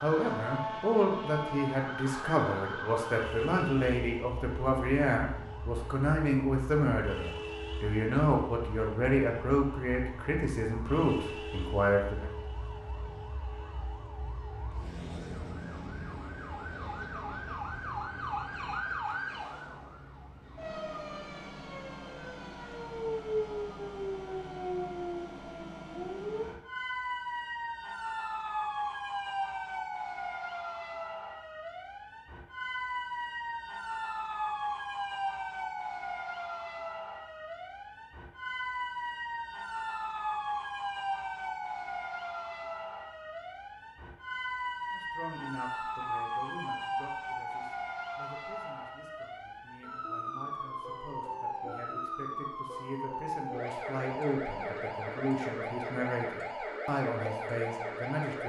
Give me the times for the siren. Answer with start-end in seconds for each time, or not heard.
0.0-58.4.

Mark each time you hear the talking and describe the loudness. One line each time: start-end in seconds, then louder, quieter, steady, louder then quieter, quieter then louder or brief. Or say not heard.
0.0-12.3 steady
44.9-58.4 quieter then louder.